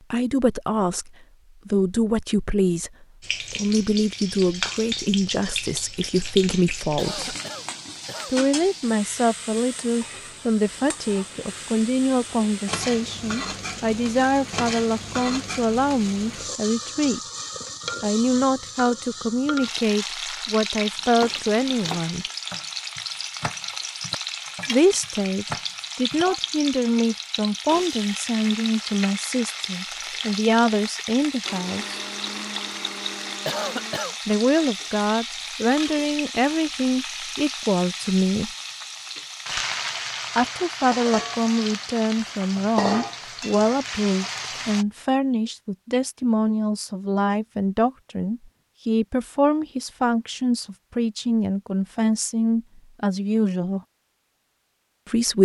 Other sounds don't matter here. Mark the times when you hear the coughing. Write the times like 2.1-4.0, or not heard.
7.0-8.4, 33.5-34.1.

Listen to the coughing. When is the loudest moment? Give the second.
34 s.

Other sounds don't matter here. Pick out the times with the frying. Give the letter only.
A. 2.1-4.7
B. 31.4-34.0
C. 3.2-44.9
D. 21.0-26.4
C.